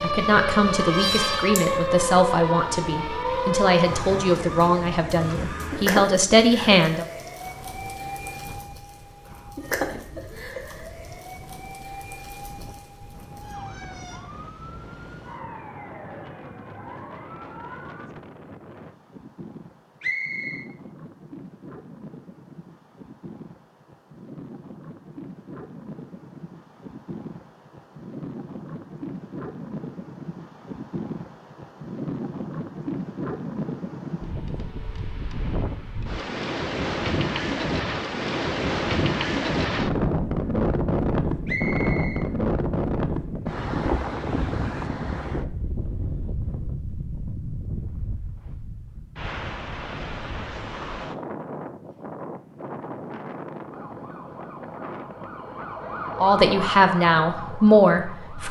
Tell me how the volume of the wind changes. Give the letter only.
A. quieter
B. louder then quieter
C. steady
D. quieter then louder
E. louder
B.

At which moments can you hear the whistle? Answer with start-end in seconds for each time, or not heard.
20.0-20.7, 41.5-42.2.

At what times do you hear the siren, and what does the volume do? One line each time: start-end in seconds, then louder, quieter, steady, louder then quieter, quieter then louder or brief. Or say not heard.
0.0-18.1 quieter
53.7-58.4 louder then quieter.